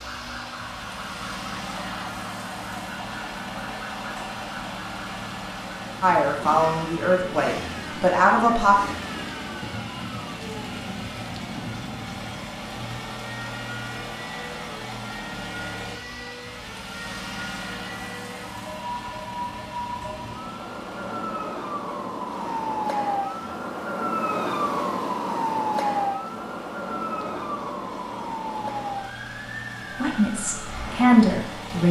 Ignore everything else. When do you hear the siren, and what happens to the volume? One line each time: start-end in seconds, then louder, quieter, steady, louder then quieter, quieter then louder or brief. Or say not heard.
0.0-31.8 louder.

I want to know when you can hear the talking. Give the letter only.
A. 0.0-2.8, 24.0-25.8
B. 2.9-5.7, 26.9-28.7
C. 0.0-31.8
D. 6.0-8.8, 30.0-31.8
D.